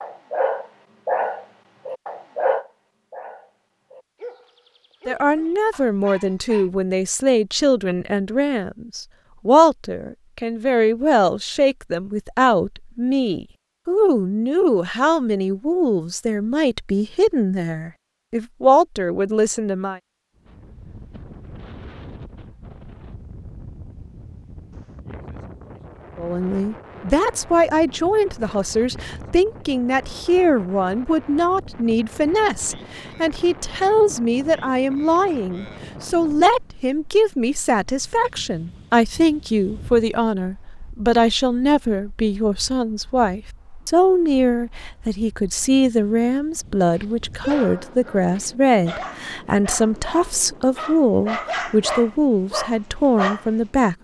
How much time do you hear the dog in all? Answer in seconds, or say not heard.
13 s.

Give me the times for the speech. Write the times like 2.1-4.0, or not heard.
5.0-20.0, 26.1-54.0.